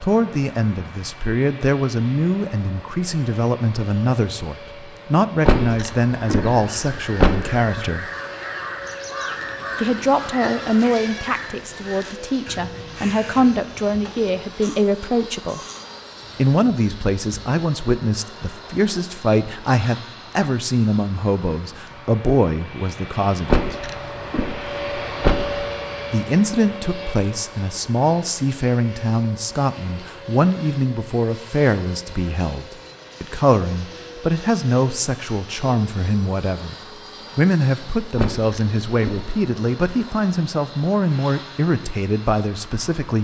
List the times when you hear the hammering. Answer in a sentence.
You can't hear the hammering here.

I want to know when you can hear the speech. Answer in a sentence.
The speech can be heard from 0.0 to 8.1 s, from 9.8 to 15.6 s, from 16.4 to 23.8 s, from 26.1 to 36.8 s and from 37.4 to 43.1 s.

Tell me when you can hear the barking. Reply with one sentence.
You can't hear the barking here.